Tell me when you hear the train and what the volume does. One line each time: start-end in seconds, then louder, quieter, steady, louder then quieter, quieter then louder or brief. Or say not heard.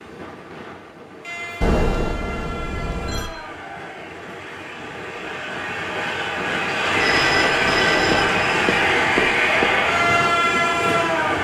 0.0-11.3 louder.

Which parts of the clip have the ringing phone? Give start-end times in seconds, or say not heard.
1.6-3.3, 7.0-9.7.